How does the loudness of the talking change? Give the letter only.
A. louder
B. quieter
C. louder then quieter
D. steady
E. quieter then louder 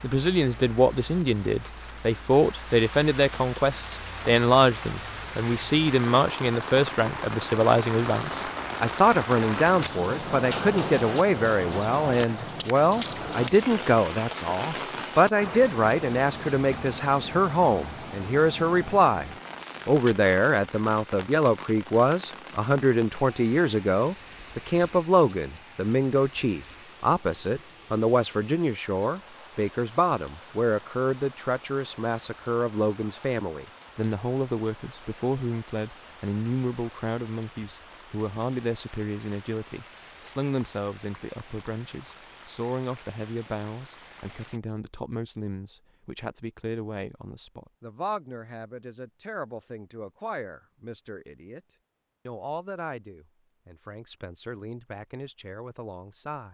B.